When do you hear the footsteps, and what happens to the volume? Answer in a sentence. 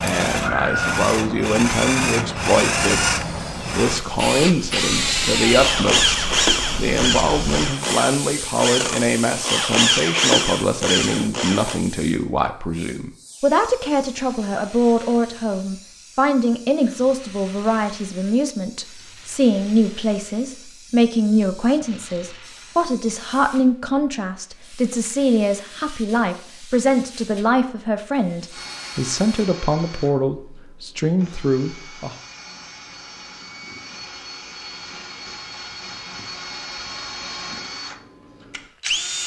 The footsteps can't be heard in this clip.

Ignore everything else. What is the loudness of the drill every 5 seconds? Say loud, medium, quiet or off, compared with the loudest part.
loud, loud, loud, off, off, quiet, quiet, medium.